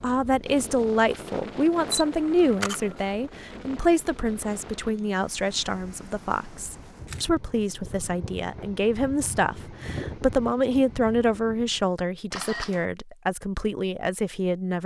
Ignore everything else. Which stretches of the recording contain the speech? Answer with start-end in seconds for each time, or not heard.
0.0-14.8.